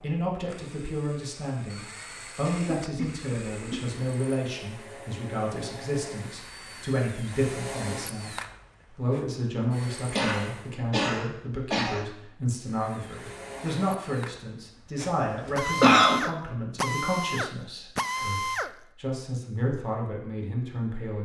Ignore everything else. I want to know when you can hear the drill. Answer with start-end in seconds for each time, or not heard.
0.0-10.8, 12.7-18.8.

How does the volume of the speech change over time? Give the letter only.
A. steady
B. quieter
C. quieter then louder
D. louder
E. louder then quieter
A.